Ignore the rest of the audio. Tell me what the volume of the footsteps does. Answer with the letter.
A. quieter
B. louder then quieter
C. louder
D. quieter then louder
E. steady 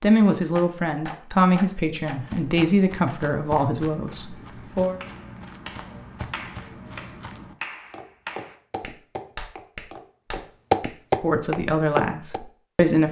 C.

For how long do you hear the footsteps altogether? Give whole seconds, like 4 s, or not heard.
10 s.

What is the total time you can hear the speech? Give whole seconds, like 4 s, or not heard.
7 s.